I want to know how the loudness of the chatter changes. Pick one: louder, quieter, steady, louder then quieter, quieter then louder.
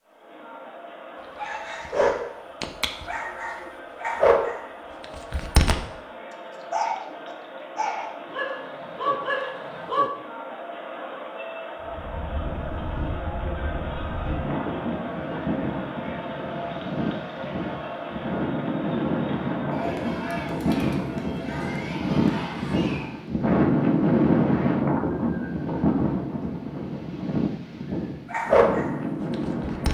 louder.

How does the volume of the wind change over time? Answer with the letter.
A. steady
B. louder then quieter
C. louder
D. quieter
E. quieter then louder
B.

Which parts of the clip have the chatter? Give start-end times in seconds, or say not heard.
0.0-23.3.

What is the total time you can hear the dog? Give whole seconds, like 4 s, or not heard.
10 s.